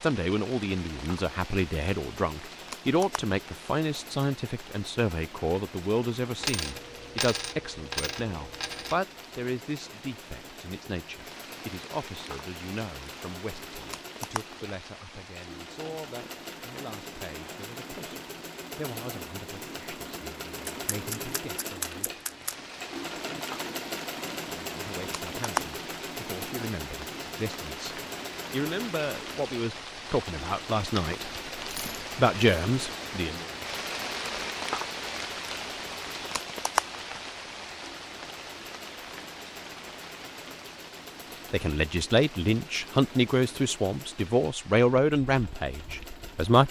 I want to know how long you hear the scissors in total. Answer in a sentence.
You can hear the scissors for 2 seconds altogether.